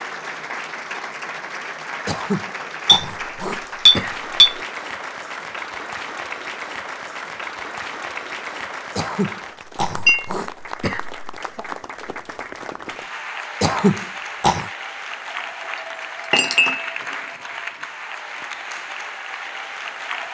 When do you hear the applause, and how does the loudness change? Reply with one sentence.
You can hear the applause from 0.0 to 20.2 s, at a steady volume.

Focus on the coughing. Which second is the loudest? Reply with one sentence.
The loudest moment of the coughing is at 14 seconds.